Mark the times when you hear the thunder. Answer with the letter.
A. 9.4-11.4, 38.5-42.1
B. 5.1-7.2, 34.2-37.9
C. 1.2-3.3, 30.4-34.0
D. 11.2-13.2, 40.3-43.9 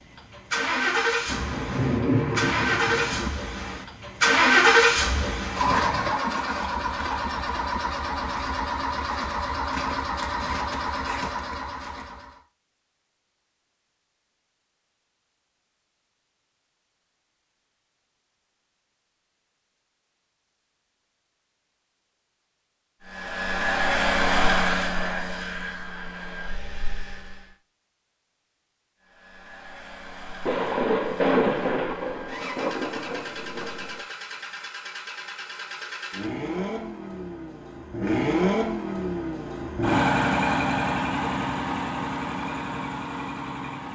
C.